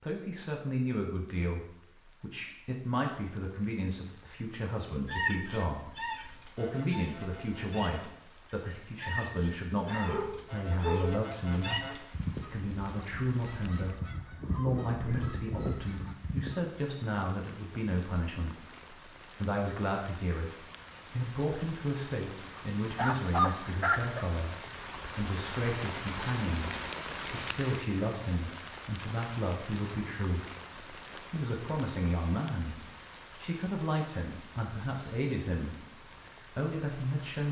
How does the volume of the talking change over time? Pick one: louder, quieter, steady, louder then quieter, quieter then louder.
steady.